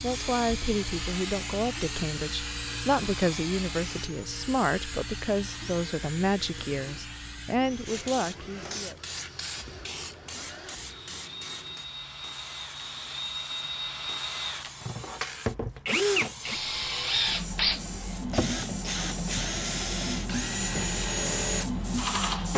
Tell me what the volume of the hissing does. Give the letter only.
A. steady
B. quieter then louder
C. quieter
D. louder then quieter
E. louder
B.